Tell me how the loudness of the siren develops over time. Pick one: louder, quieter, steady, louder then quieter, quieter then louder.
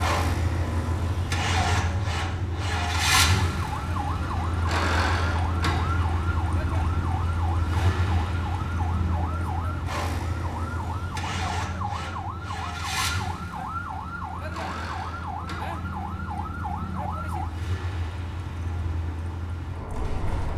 steady.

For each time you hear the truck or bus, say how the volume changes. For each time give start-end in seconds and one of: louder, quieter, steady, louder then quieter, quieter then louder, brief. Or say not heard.
0.0-20.5 quieter.